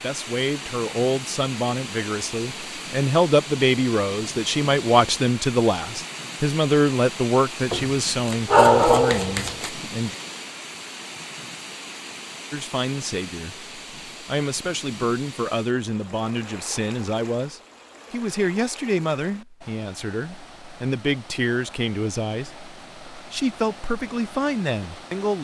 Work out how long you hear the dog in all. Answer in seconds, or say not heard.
2 s.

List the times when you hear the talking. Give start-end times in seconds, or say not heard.
0.0-10.2, 12.5-25.3.